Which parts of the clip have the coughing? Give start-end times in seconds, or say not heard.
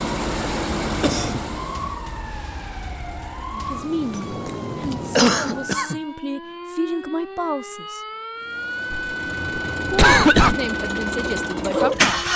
0.9-1.4, 5.2-6.0, 8.9-10.6.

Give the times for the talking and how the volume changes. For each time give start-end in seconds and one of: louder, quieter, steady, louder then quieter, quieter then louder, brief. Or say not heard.
3.5-8.0 quieter then louder
9.9-12.2 brief.